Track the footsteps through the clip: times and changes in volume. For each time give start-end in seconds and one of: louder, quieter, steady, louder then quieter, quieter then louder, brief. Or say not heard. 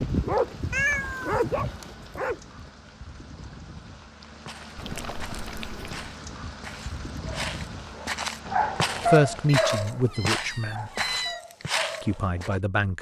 4.5-12.6 louder.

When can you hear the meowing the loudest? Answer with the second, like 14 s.
1 s.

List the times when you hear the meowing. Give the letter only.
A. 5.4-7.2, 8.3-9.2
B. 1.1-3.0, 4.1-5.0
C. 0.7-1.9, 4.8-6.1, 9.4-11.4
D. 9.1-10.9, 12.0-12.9
C.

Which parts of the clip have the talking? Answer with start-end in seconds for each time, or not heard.
9.1-10.9, 12.0-12.9.